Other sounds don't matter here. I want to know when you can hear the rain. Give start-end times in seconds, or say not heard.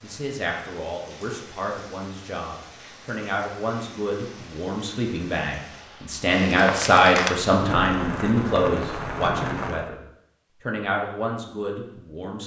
0.0-9.9.